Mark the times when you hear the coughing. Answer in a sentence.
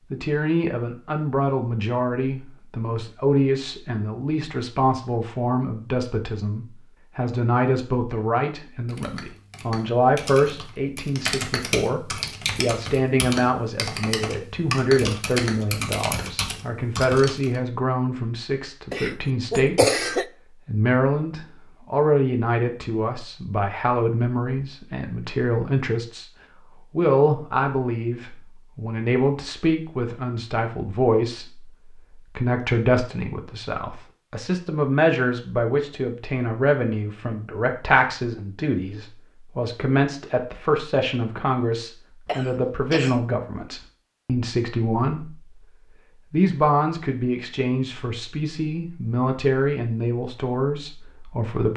The coughing can be heard from 18.9 to 20.2 s and from 42.2 to 43.2 s.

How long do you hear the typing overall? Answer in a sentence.
You can hear the typing for 9 seconds altogether.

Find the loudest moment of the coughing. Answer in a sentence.
The volume of the coughing peaks at 20 seconds.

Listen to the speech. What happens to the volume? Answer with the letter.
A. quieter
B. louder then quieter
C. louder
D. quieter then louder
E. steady
E.